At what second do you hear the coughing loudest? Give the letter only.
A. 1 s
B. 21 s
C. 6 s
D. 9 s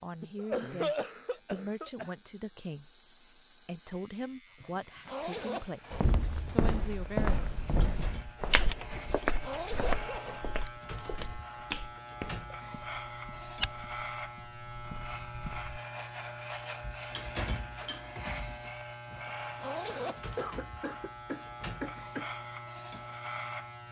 A.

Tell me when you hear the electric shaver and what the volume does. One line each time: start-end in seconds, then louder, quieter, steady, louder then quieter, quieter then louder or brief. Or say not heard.
0.0-23.8 louder.